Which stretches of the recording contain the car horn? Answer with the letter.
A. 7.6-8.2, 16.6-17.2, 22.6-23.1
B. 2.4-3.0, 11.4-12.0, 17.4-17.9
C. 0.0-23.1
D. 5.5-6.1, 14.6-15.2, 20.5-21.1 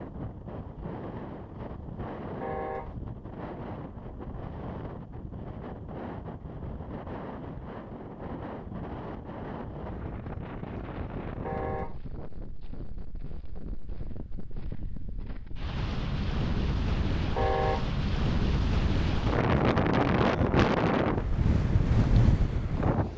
B.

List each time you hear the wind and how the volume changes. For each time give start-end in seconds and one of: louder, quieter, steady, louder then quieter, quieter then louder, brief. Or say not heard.
0.0-23.1 louder.